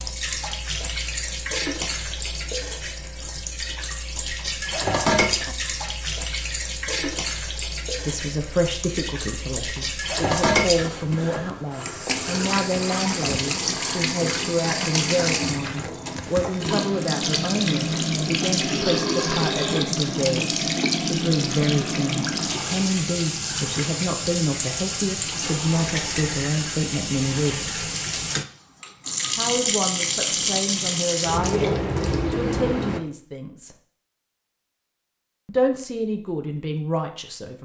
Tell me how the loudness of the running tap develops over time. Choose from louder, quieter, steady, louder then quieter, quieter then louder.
steady.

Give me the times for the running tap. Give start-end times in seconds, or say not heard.
0.0-33.0.